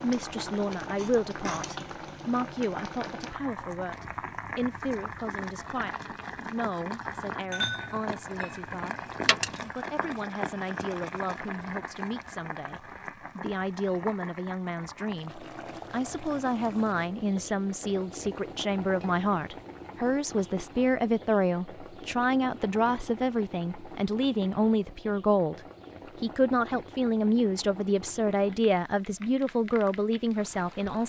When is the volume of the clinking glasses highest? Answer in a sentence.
The volume of the clinking glasses peaks at 8 seconds.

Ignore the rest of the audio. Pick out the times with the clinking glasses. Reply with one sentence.
The clinking glasses can be heard from 7.0 to 9.3 s.